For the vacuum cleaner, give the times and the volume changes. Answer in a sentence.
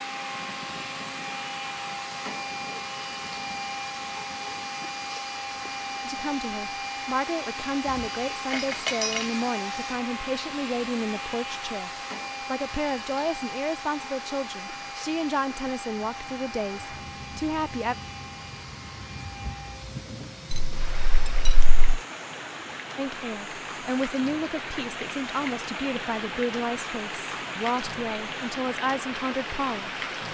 The vacuum cleaner can be heard from 0.0 to 30.2 s, getting quieter.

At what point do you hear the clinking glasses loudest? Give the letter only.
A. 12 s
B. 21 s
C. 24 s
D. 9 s
D.